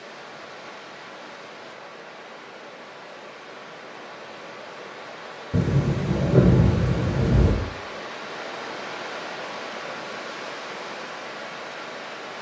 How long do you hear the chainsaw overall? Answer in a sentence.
The chainsaw can't be heard in this clip.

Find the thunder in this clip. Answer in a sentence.
The thunder can be heard from 5.5 to 7.5 s.